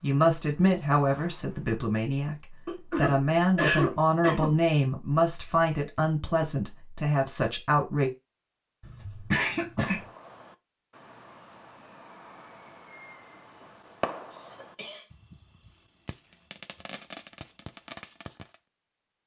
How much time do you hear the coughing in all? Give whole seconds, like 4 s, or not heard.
4 s.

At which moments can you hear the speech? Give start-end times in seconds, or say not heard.
0.0-8.1.